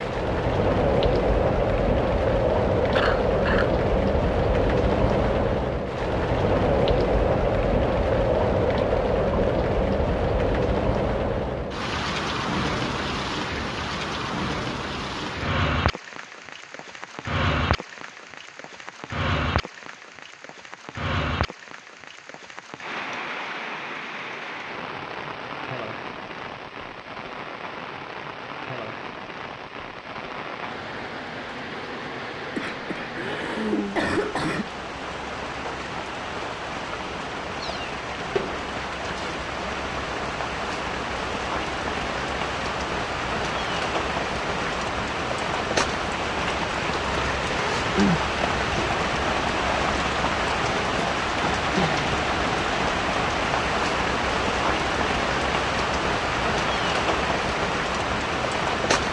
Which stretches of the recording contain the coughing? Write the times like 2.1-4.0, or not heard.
3.0-3.7, 32.5-34.7.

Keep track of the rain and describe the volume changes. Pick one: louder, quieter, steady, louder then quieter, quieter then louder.
quieter then louder.